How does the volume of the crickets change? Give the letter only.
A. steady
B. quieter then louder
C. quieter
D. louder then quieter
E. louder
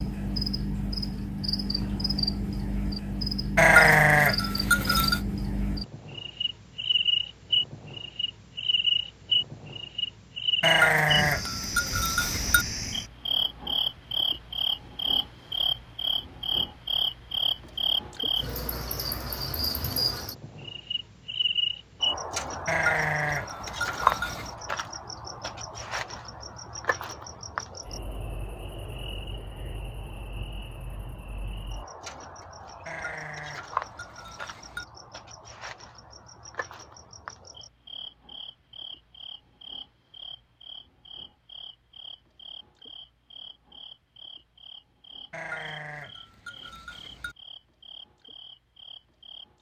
C.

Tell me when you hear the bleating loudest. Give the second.
4 s.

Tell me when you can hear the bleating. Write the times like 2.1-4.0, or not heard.
3.5-5.2, 10.6-12.7, 22.6-24.6, 32.9-34.9, 45.3-47.4.